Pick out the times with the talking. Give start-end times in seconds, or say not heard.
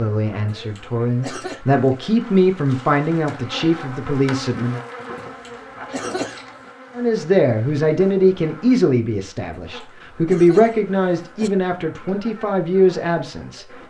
0.0-4.8, 7.0-13.8.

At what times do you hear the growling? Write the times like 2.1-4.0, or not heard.
not heard.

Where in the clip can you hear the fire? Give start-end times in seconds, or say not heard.
not heard.